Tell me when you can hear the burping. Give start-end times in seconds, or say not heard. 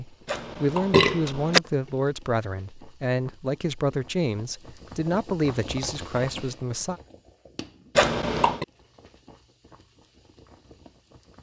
0.2-1.6, 8.0-8.7.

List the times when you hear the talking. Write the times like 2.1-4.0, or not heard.
0.0-7.0.